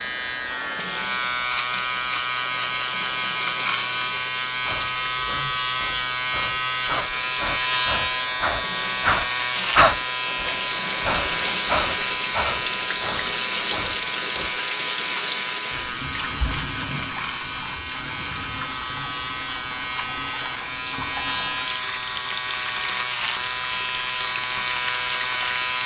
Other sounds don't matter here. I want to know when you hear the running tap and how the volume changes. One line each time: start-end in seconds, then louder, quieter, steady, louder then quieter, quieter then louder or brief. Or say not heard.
0.0-25.8 louder then quieter.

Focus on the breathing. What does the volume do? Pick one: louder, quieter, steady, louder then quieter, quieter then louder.
louder then quieter.